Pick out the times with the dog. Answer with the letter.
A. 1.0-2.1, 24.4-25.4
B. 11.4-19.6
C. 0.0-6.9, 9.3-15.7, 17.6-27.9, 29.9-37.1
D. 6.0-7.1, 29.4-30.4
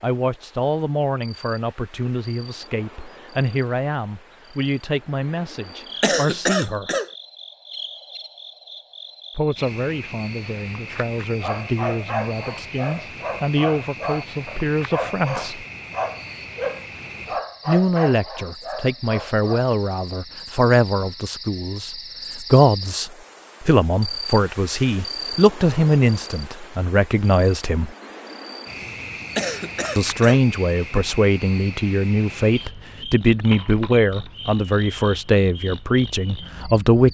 B.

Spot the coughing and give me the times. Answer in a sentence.
You can hear the coughing from 6.0 to 7.1 s and from 29.4 to 30.4 s.